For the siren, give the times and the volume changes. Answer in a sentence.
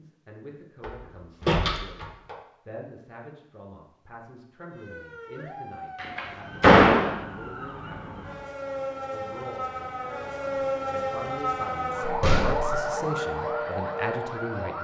You can hear the siren from 4.7 to 14.7 s, getting louder.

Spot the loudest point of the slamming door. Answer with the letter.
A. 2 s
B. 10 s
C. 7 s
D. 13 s
C.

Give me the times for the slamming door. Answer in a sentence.
You can hear the slamming door from 0.8 to 2.4 s, from 6.0 to 7.2 s and from 12.0 to 12.8 s.